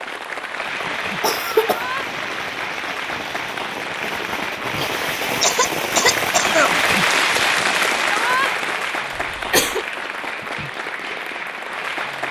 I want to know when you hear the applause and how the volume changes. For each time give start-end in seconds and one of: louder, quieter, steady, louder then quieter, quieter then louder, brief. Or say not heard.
0.0-12.2 louder then quieter.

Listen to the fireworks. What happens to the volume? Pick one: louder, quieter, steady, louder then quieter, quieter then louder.
louder then quieter.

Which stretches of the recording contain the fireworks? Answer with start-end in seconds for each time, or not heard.
0.7-8.8.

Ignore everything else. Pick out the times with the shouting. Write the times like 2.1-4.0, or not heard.
1.6-2.1, 8.1-8.5.